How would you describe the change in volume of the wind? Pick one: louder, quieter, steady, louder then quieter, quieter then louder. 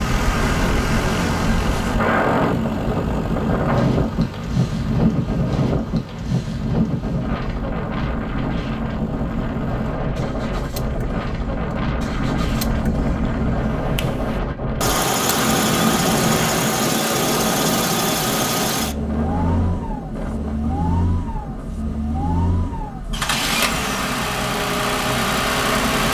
quieter.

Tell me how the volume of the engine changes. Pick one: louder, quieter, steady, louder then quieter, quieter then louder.
quieter then louder.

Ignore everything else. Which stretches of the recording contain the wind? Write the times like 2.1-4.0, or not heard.
0.0-26.0.